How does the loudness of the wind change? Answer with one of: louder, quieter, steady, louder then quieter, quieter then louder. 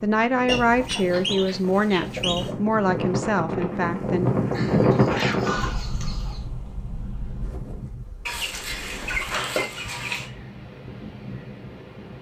louder then quieter.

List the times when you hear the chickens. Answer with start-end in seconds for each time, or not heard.
0.5-2.5, 4.5-6.4, 8.2-10.3.